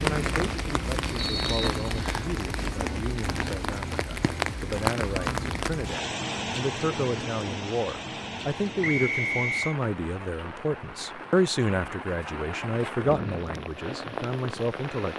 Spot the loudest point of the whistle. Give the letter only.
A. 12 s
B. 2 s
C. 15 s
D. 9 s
D.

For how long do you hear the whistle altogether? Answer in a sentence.
The whistle can be heard for 2 seconds in total.